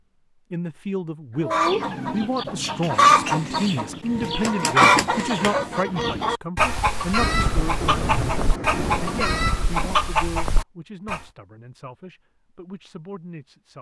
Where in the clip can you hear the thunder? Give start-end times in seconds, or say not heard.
7.2-10.2.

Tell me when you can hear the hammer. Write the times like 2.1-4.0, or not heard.
not heard.